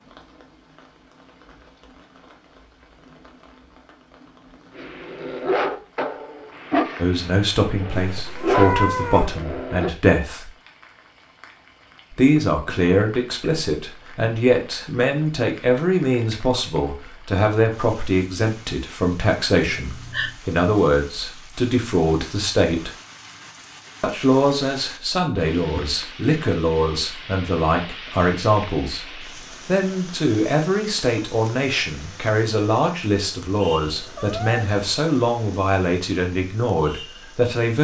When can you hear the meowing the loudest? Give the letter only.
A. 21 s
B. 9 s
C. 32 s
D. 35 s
B.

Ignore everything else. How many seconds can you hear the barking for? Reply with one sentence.
You can hear the barking for 5 seconds altogether.